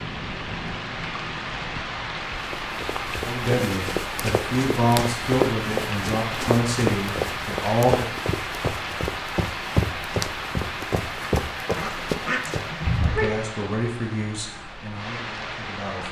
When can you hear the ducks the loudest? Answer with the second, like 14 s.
13 s.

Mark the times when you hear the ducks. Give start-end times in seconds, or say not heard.
11.8-13.3.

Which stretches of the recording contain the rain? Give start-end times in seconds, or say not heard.
0.0-16.0.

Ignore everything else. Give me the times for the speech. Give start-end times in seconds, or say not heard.
3.2-8.1, 13.0-16.0.